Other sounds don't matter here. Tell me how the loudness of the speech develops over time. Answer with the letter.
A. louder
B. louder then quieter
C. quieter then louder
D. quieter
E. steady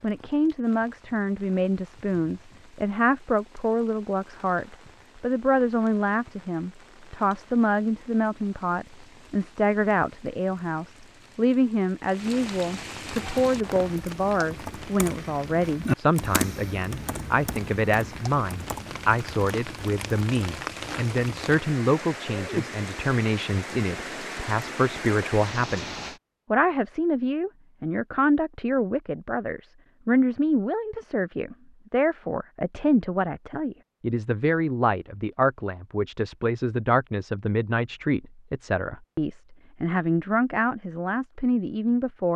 E.